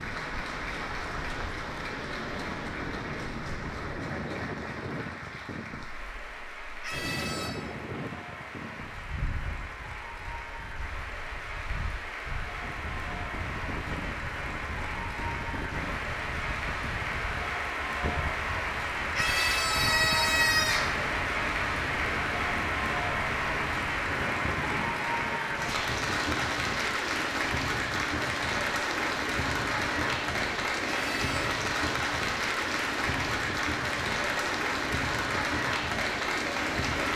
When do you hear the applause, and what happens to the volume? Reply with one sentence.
The applause can be heard from 0.0 to 37.1 s, getting louder.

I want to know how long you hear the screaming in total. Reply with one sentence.
The screaming can be heard for 3 seconds in total.